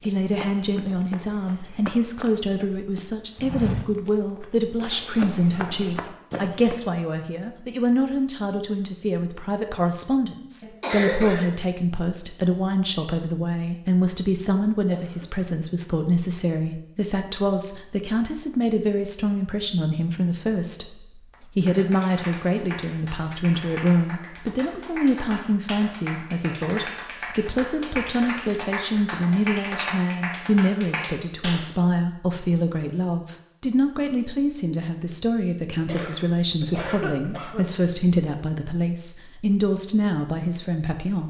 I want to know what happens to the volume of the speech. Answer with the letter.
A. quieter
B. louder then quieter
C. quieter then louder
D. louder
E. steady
E.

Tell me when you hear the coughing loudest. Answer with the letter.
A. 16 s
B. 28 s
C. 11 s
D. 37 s
C.